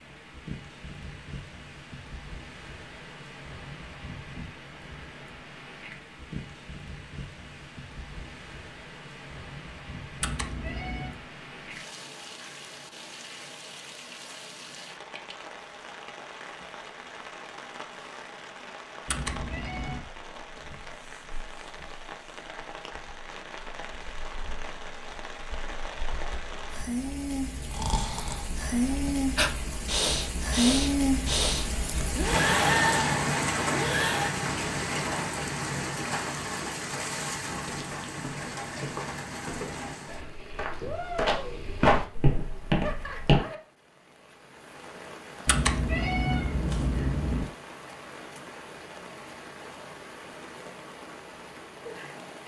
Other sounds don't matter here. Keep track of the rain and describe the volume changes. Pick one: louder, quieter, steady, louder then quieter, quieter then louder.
louder then quieter.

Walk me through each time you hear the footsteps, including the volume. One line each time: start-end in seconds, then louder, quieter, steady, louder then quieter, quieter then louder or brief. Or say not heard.
37.5-43.4 louder.